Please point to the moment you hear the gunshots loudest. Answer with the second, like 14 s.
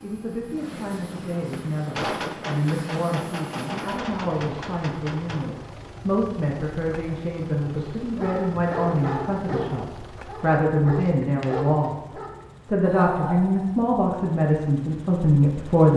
2 s.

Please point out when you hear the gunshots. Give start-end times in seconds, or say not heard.
1.5-5.5.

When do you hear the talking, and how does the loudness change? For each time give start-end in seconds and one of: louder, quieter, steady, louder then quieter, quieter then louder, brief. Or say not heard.
0.0-15.9 louder.